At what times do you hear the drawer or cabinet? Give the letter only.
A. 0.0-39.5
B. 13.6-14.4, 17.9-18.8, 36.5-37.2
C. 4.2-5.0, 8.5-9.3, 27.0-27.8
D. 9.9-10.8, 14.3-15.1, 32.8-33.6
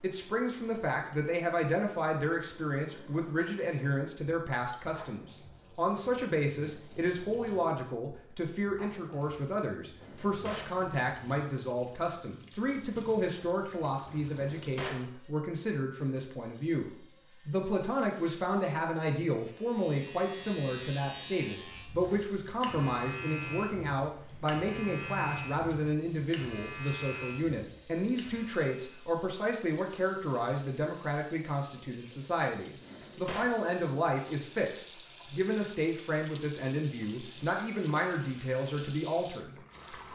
D.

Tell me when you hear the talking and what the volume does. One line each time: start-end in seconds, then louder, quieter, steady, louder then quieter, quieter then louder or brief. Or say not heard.
0.0-39.5 steady.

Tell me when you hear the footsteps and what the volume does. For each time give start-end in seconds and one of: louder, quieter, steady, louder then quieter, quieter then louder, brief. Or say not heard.
not heard.